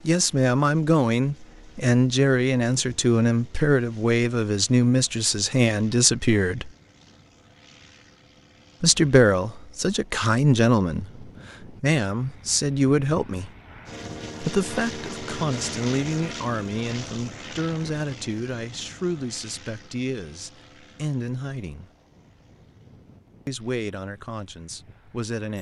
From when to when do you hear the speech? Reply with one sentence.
The speech can be heard from 0.1 to 6.7 s, from 8.8 to 13.5 s, from 14.4 to 21.9 s and from 23.4 to 25.5 s.